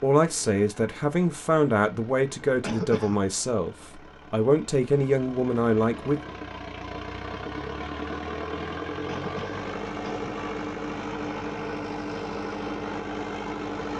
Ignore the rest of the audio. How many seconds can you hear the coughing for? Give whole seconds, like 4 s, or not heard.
2 s.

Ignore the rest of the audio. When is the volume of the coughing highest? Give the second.
3 s.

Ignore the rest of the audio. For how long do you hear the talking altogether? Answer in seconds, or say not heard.
6 s.